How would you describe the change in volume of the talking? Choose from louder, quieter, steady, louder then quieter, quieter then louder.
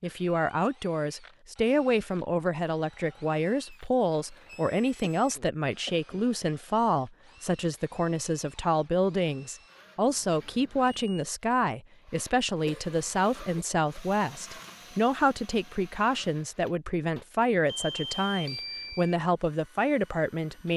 steady.